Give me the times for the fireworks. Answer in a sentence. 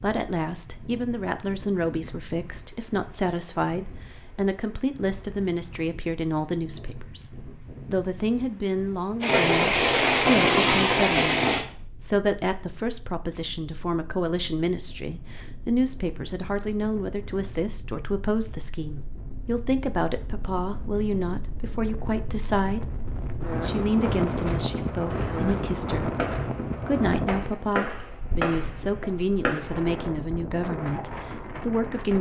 You can hear the fireworks from 9.2 to 11.6 s and from 25.1 to 29.8 s.